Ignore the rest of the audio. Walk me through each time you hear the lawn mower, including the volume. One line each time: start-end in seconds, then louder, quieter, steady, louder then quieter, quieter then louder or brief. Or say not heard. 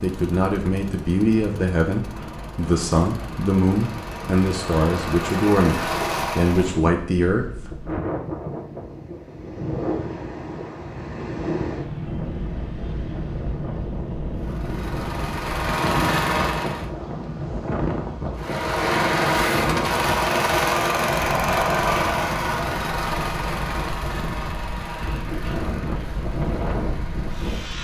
0.0-6.8 louder
14.3-16.9 brief
18.4-27.7 quieter.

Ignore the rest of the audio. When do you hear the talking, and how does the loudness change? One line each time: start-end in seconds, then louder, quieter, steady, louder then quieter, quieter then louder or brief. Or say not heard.
0.0-7.8 steady.